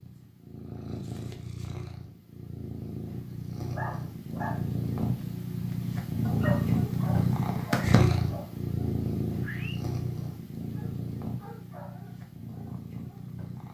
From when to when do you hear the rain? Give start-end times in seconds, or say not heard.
not heard.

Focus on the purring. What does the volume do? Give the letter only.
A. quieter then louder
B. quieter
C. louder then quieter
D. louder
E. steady
C.